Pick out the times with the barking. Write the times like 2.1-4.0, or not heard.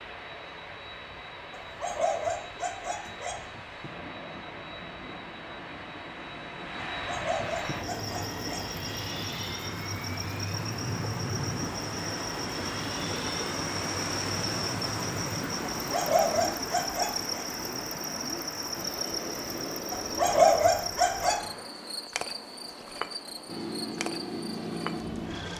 1.5-3.5, 7.0-8.7, 15.8-17.4, 19.9-21.4.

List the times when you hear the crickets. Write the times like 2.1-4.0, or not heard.
7.7-25.5.